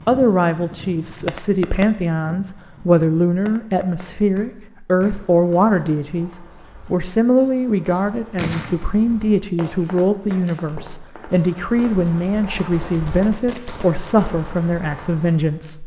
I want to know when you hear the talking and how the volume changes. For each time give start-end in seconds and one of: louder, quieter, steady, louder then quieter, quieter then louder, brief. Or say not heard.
0.1-15.8 steady.